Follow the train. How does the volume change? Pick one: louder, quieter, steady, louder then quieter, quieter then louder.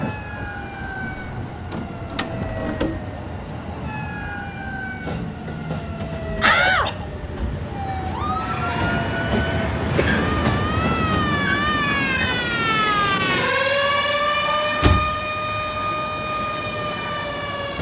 louder then quieter.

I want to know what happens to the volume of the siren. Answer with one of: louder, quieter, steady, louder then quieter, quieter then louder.
louder.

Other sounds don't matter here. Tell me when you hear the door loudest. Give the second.
7 s.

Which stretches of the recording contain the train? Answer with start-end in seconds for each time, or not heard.
0.0-17.7.